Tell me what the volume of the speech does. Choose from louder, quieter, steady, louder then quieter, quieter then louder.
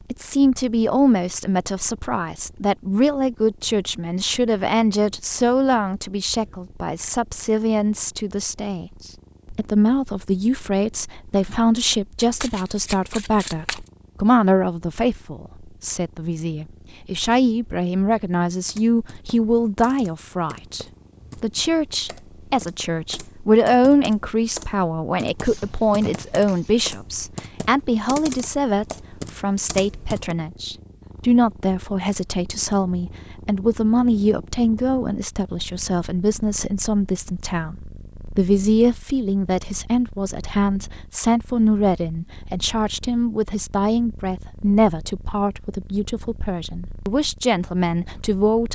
steady.